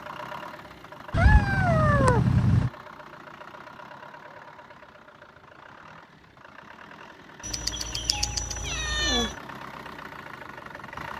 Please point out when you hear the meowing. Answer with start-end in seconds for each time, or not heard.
1.1-2.7, 7.5-9.3.